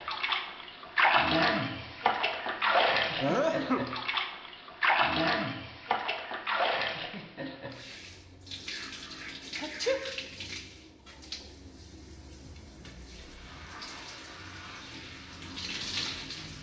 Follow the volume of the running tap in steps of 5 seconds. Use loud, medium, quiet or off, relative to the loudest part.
loud, medium, quiet, medium.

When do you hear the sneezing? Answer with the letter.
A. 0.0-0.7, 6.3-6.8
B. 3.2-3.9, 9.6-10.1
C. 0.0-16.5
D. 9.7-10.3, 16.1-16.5
B.